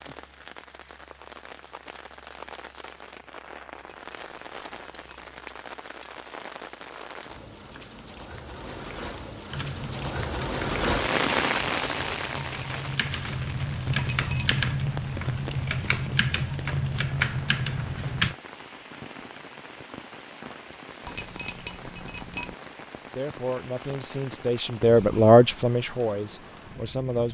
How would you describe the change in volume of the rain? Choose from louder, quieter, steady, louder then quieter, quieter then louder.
louder then quieter.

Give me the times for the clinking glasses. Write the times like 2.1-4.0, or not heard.
3.8-5.3, 13.9-14.7, 21.1-22.6.